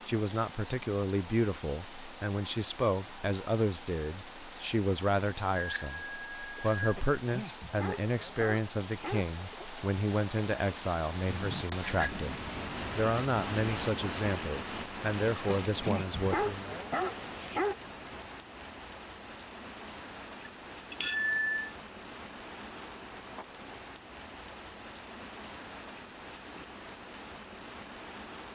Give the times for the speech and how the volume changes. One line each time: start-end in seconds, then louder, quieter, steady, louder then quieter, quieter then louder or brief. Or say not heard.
0.1-16.7 steady.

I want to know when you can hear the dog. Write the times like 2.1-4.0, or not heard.
7.0-9.7, 15.7-17.8.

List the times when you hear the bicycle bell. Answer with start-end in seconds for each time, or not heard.
5.5-7.0, 11.2-12.1, 20.4-21.7.